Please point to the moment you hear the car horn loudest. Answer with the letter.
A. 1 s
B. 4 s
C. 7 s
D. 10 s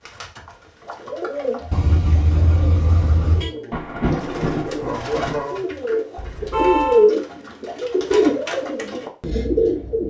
C.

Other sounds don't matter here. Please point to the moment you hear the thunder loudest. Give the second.
4 s.